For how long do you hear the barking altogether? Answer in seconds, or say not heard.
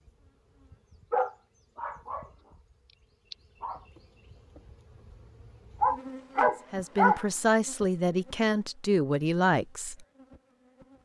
3 s.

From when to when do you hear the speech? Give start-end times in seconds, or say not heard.
6.7-10.1.